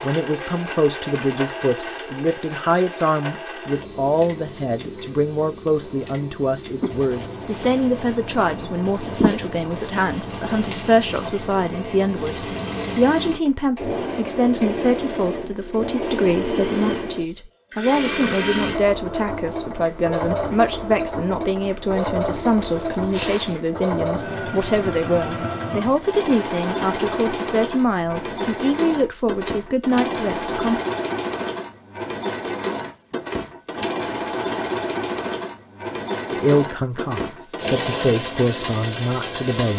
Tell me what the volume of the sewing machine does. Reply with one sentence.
The loudness of the sewing machine goes up.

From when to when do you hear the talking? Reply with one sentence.
The talking can be heard from 0.0 to 30.8 s and from 36.3 to 39.7 s.